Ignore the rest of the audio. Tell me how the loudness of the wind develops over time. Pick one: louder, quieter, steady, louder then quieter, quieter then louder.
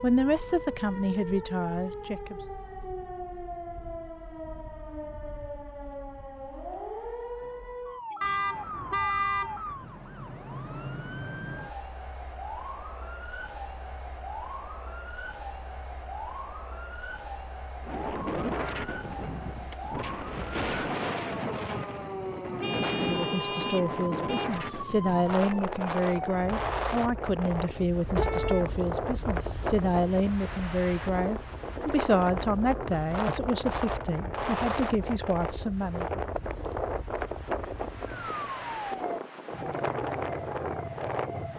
steady.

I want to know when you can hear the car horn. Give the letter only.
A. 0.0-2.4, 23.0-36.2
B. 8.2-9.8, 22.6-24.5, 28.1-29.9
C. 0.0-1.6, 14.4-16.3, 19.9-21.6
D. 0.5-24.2
B.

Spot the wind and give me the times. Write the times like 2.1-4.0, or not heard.
17.8-41.5.